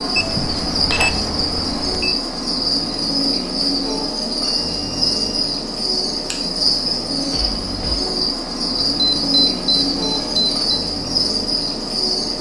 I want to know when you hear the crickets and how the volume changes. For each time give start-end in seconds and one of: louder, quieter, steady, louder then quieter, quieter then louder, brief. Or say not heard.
0.0-12.3 steady.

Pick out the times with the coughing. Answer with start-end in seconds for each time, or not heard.
not heard.